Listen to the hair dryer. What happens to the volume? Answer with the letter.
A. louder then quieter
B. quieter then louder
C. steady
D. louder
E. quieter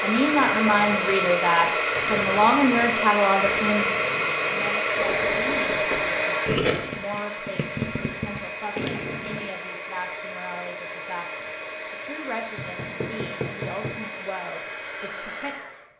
E.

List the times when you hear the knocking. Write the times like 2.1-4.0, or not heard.
5.0-6.2, 12.6-14.1.